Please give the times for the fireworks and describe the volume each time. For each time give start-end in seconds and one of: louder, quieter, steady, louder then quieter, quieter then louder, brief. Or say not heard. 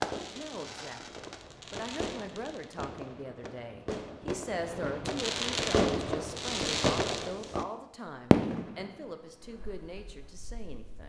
0.0-7.7 louder
8.3-11.0 brief.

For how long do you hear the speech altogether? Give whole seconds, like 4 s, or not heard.
11 s.